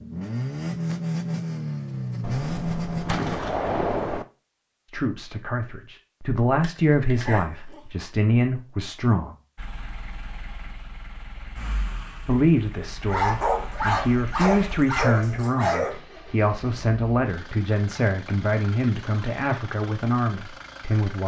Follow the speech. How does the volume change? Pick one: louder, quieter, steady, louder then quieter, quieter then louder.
steady.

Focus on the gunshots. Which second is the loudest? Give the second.
4 s.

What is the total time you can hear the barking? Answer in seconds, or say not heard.
4 s.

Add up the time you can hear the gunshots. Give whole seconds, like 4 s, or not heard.
2 s.